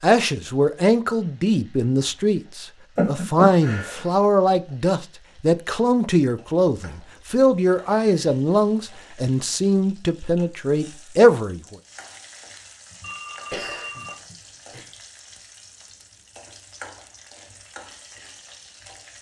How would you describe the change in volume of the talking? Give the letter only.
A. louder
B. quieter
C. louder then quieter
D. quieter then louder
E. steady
E.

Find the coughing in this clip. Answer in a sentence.
The coughing can be heard from 3.0 to 4.0 s and from 12.9 to 14.8 s.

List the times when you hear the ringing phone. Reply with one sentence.
The ringing phone can be heard from 13.0 to 14.2 s.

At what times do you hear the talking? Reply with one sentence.
You can hear the talking from 0.0 to 11.8 s.